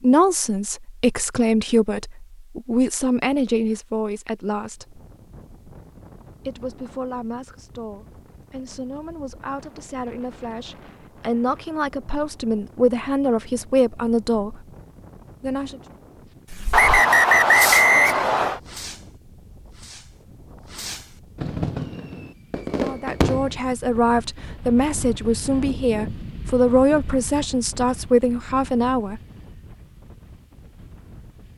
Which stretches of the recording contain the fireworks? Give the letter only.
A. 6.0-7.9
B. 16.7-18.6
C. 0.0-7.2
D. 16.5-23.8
D.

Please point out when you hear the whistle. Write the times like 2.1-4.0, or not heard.
16.7-18.6.